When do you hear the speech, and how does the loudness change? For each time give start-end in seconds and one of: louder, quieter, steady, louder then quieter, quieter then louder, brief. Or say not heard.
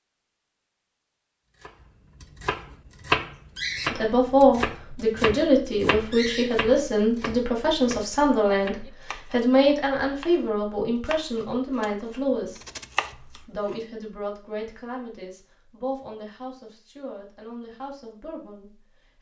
3.9-12.6 quieter
13.3-19.1 quieter.